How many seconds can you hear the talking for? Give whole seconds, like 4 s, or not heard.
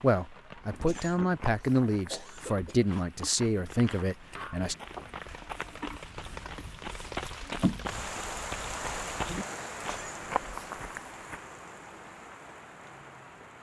5 s.